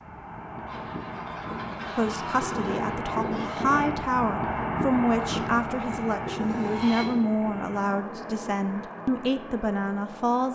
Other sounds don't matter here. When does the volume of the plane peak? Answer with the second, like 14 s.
5 s.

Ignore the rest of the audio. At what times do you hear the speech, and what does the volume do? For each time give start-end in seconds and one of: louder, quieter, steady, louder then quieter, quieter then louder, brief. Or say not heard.
1.9-10.4 steady.